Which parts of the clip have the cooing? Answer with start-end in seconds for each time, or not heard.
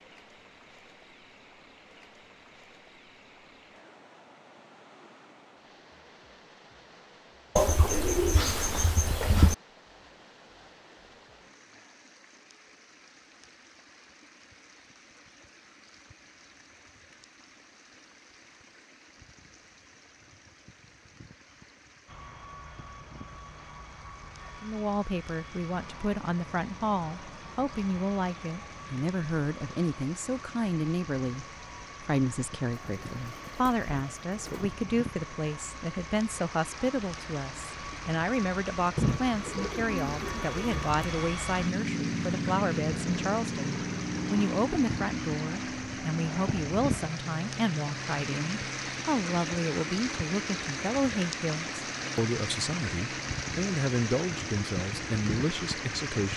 7.5-9.6, 32.8-34.8, 39.0-41.1.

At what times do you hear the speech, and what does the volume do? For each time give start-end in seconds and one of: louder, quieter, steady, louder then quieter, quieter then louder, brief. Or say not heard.
24.6-56.3 steady.